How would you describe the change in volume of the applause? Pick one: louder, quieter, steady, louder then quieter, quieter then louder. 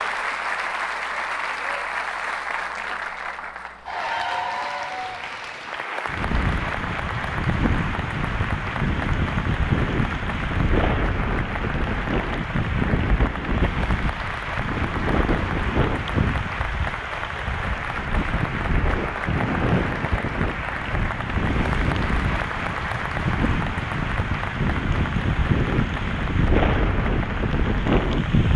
steady.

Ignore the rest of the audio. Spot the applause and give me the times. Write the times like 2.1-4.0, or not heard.
0.0-28.5.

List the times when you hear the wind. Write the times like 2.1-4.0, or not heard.
6.0-28.5.